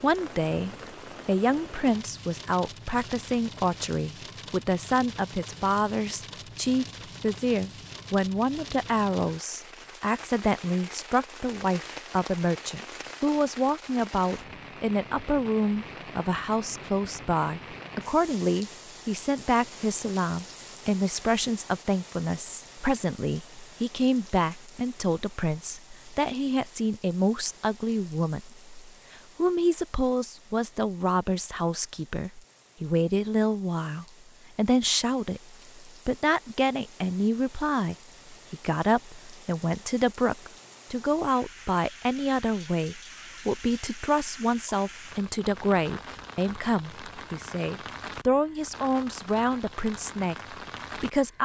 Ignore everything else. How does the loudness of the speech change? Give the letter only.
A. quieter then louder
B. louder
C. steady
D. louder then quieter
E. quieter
C.